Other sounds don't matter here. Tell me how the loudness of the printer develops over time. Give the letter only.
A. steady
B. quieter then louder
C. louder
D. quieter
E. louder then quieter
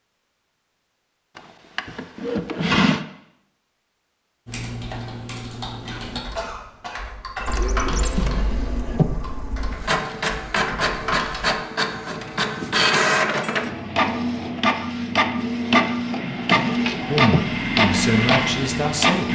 C.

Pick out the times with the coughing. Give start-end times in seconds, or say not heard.
5.9-7.6.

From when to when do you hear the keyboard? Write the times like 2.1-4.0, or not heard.
4.5-11.5.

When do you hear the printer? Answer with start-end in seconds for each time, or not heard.
7.5-19.2.